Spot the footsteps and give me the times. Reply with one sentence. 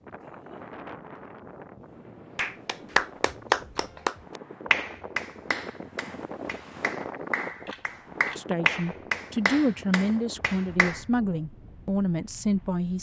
You can't hear the footsteps here.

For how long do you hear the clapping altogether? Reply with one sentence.
The clapping can be heard for 9 seconds in total.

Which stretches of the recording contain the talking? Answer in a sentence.
You can hear the talking from 8.3 to 12.9 s.